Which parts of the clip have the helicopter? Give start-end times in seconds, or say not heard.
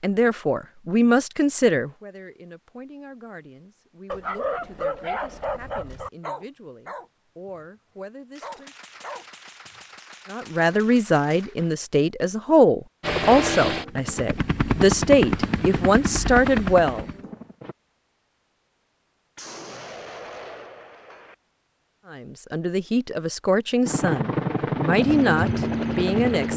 13.0-17.8, 23.9-26.5.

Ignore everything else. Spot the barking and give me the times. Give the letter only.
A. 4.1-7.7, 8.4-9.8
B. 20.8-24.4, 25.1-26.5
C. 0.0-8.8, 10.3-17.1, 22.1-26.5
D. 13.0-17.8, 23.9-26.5
A.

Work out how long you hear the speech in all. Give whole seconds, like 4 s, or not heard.
20 s.